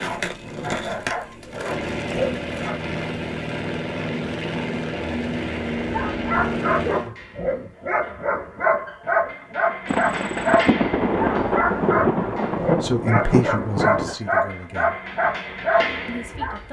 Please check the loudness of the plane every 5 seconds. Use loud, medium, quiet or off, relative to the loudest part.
loud, loud, off, off.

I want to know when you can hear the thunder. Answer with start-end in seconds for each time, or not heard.
9.8-14.2.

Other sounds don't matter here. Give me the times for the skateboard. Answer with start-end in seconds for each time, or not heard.
0.0-2.7.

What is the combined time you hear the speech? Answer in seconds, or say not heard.
3 s.